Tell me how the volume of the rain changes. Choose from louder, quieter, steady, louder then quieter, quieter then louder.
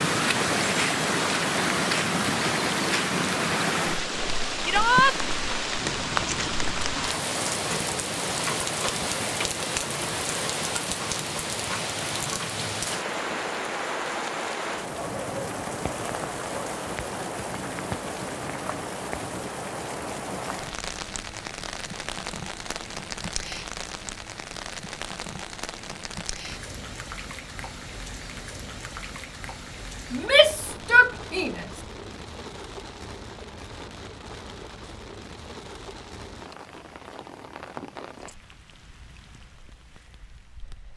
quieter.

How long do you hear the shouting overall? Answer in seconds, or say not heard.
2 s.